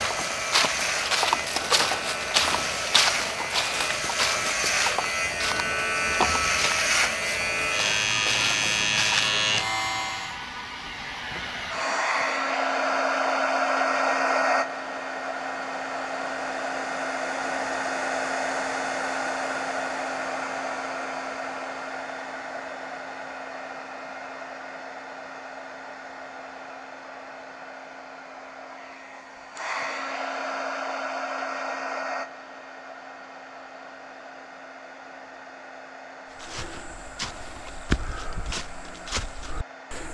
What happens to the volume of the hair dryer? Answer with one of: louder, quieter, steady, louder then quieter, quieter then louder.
louder then quieter.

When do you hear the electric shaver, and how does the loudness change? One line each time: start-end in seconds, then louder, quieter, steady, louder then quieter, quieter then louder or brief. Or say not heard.
0.0-10.3 louder.